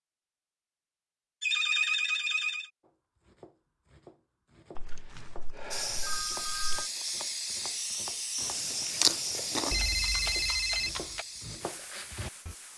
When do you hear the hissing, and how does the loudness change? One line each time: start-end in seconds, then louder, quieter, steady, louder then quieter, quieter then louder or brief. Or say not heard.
5.7-12.7 quieter.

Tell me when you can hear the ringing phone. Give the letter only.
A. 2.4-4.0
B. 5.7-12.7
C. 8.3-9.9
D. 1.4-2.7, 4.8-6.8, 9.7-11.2
D.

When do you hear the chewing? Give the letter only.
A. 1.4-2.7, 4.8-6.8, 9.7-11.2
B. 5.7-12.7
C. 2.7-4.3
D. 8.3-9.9
D.